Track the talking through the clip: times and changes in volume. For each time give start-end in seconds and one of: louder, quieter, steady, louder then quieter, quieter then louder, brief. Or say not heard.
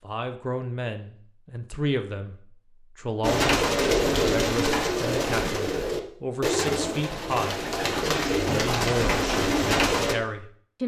0.0-2.4 brief
3.0-7.7 steady
8.3-10.8 brief.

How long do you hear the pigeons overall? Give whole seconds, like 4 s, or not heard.
7 s.